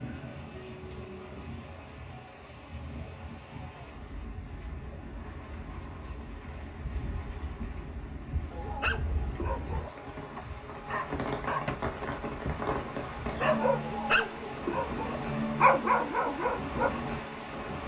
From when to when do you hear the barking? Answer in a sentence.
The barking can be heard from 8.5 to 16.9 s.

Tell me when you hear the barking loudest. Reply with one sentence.
The volume of the barking peaks at 16 seconds.